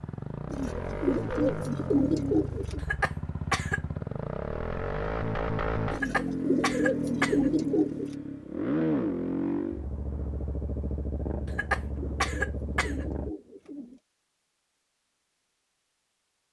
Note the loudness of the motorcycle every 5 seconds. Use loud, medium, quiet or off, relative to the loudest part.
medium, loud, medium, off.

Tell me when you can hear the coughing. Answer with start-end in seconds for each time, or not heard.
2.8-3.8, 5.9-7.5, 11.4-13.1.